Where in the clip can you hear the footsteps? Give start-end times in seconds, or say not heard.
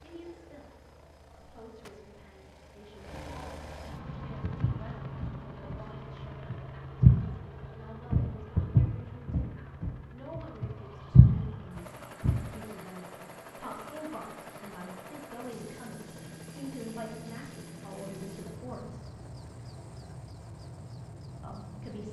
4.4-12.4.